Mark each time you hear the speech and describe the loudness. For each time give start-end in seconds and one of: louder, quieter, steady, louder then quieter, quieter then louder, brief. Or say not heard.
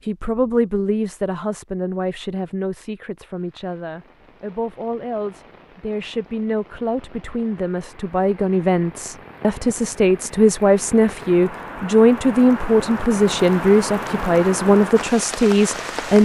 0.1-16.2 louder.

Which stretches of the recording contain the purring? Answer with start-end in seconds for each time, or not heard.
not heard.